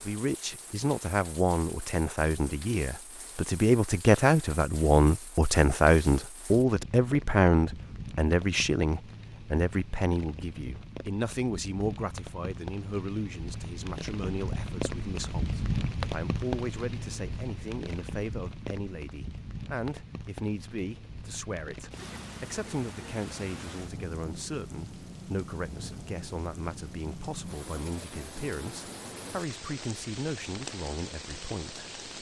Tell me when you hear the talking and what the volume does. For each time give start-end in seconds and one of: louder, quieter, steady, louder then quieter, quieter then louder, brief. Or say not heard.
0.0-31.9 quieter.